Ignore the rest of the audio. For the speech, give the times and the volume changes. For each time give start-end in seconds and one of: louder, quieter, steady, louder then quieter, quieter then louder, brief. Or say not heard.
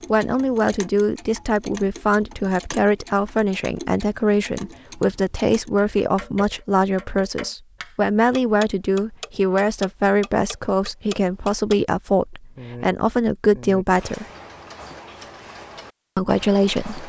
0.1-14.2 steady
16.1-17.0 brief.